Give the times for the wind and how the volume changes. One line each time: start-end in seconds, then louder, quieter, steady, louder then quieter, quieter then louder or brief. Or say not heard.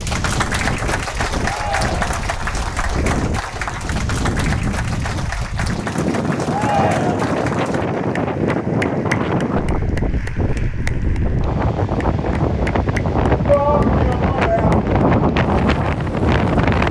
0.0-16.8 louder.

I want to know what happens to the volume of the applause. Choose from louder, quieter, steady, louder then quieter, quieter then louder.
quieter.